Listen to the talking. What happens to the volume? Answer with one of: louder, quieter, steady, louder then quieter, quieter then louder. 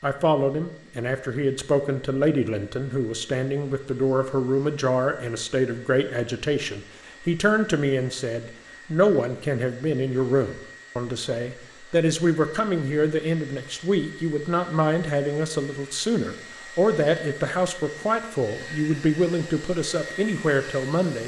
steady.